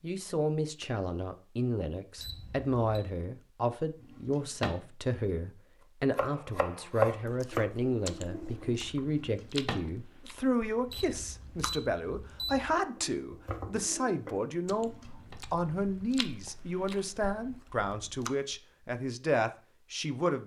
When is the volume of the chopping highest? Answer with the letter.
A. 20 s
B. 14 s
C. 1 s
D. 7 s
D.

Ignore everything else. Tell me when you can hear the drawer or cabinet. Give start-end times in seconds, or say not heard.
4.0-4.8, 9.2-9.9, 14.7-15.3.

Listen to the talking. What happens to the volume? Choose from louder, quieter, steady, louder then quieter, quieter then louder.
steady.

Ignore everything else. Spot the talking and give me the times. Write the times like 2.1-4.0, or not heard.
0.0-20.4.